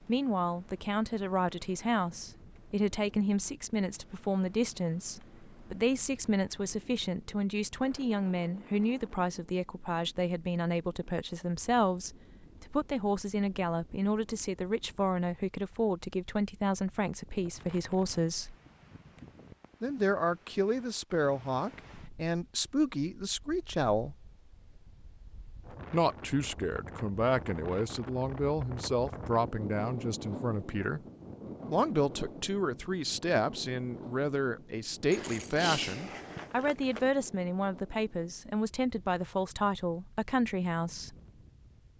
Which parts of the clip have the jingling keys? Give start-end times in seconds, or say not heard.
35.1-37.1.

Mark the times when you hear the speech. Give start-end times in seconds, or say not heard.
0.1-18.6, 19.8-24.1, 25.9-31.0, 31.6-41.1.